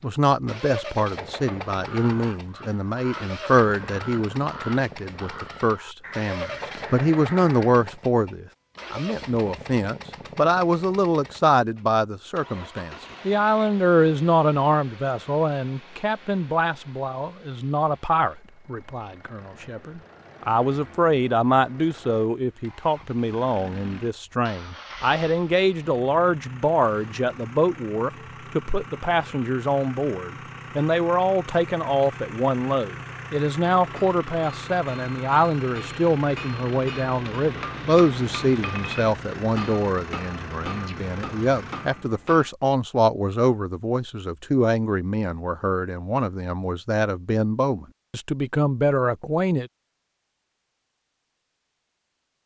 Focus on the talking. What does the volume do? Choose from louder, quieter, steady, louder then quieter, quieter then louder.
steady.